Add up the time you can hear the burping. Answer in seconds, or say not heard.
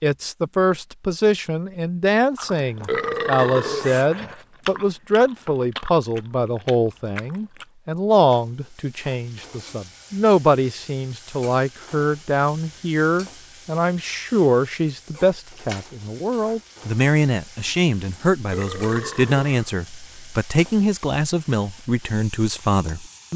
3 s.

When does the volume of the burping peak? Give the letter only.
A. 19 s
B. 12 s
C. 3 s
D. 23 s
C.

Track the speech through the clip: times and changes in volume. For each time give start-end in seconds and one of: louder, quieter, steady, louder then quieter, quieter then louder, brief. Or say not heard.
0.0-23.3 steady.